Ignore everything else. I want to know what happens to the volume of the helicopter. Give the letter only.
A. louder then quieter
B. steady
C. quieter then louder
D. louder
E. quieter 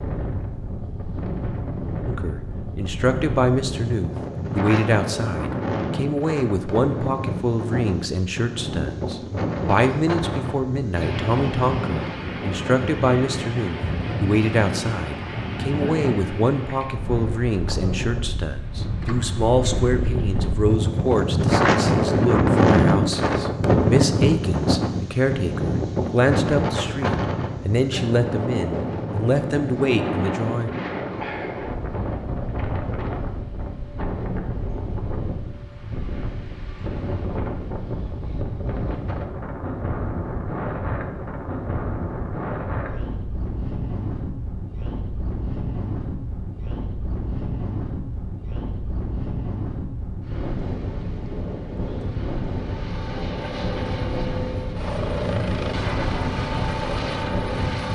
D.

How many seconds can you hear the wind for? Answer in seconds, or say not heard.
58 s.